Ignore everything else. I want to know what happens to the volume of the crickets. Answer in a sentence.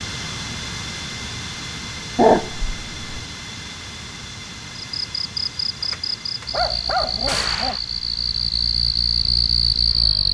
The loudness of the crickets goes up.